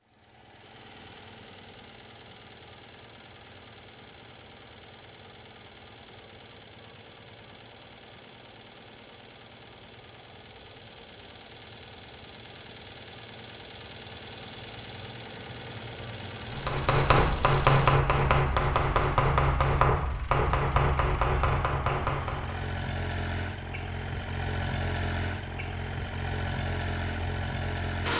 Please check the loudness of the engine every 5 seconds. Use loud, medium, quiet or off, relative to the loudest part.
quiet, quiet, medium, medium, loud, loud.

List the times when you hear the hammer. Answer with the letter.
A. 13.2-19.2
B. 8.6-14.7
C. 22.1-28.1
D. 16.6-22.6
D.